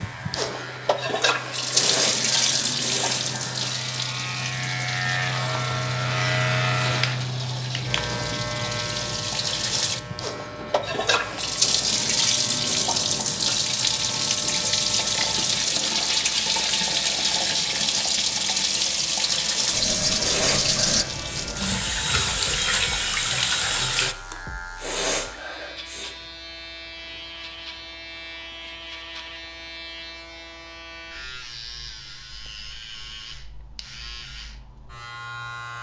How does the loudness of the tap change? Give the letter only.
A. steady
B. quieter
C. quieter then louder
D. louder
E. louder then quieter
C.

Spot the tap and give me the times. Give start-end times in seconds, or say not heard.
0.0-24.1.